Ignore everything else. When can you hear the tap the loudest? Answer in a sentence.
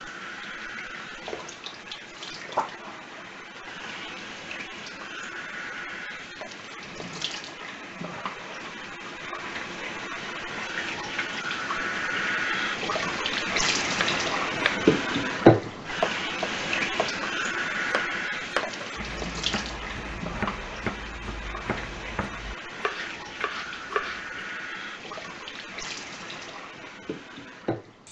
The loudest moment of the tap is at 15 seconds.